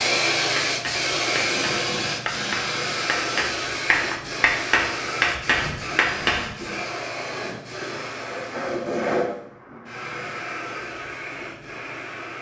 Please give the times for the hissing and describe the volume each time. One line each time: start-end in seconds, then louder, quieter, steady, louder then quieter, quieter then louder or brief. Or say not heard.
0.0-12.3 quieter.